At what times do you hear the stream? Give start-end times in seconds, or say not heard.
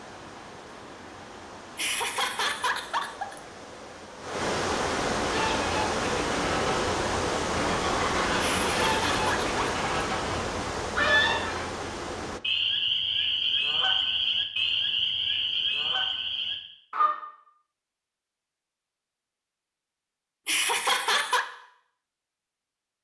0.0-12.4.